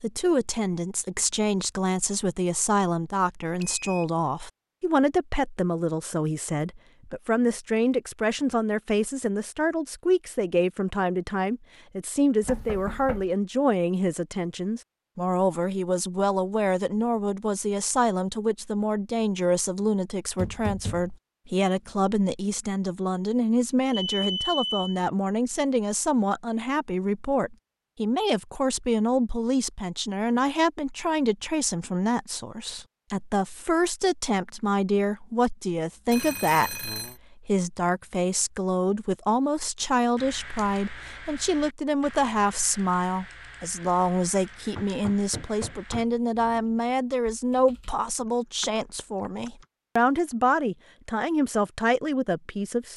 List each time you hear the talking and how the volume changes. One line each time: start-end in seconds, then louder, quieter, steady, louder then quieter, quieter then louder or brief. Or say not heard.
0.0-52.9 steady.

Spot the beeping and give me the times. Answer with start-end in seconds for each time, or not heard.
3.6-4.0, 24.1-25.0, 36.1-37.1.